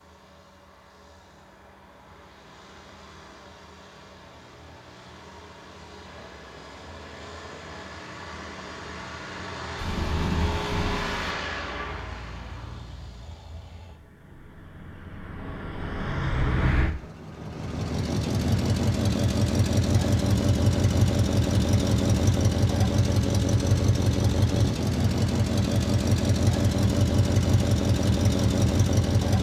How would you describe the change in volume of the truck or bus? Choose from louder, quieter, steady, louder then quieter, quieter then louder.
louder.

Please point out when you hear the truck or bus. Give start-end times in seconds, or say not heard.
0.0-29.3.